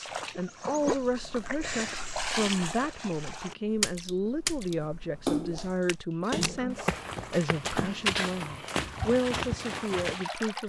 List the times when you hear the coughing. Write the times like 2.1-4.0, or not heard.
not heard.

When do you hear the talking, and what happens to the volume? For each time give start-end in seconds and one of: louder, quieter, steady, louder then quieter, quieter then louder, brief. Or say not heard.
0.0-10.6 steady.